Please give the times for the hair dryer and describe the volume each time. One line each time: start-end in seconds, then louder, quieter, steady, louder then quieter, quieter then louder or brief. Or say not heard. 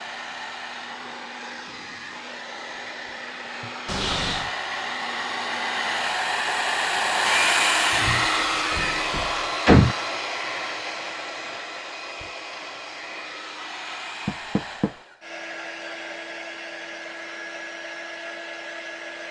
0.0-19.2 louder then quieter.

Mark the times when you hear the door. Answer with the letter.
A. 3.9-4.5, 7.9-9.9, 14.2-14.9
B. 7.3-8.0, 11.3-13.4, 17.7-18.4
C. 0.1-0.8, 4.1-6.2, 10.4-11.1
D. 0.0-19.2
A.